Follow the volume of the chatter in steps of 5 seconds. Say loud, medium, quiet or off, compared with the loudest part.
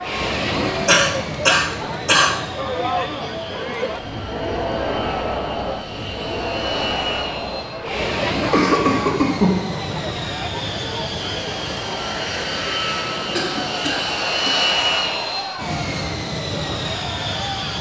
loud, loud, medium, medium.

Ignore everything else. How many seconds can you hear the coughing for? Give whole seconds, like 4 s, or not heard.
4 s.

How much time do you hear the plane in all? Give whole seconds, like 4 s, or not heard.
18 s.